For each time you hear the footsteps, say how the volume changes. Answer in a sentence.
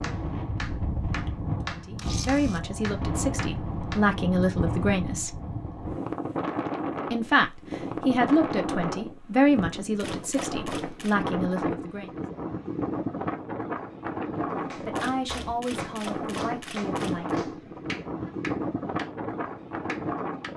You can't hear the footsteps here.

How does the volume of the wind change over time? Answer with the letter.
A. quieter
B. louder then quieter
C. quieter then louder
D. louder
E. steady
E.